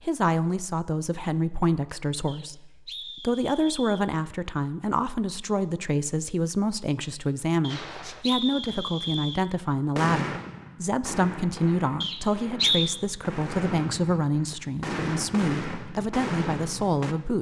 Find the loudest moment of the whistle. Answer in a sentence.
The loudest moment of the whistle is at 13 seconds.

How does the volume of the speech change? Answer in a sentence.
The loudness of the speech stays about the same.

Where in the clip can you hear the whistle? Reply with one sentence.
You can hear the whistle from 2.2 to 4.0 s, from 7.6 to 9.4 s and from 12.0 to 13.0 s.